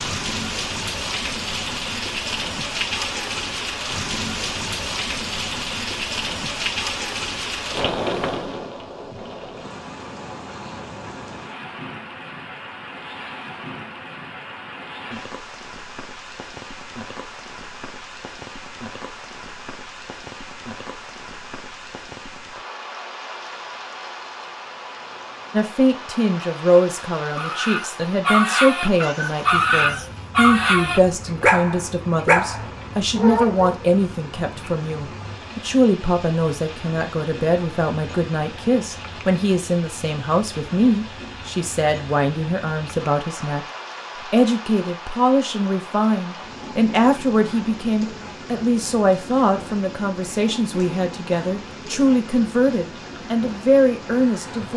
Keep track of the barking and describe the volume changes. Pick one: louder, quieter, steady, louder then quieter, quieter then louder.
steady.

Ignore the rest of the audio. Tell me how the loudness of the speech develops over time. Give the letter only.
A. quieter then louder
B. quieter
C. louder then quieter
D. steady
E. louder
D.